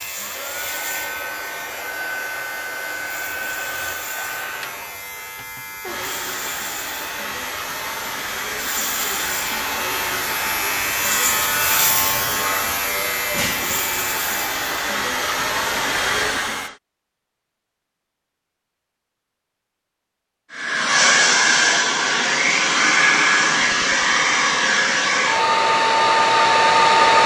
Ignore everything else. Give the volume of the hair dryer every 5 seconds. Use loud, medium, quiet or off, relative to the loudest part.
quiet, quiet, quiet, medium, loud, loud.